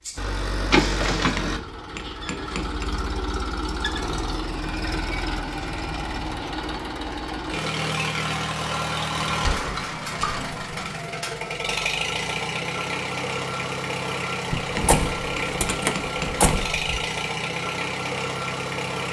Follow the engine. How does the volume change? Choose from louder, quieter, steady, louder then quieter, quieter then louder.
steady.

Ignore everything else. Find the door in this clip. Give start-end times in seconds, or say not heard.
0.7-1.3, 9.2-10.7, 14.5-17.1.